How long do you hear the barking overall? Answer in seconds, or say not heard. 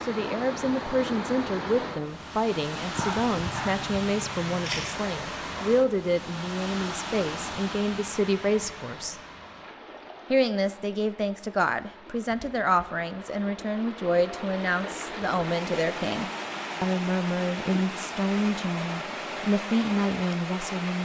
2 s.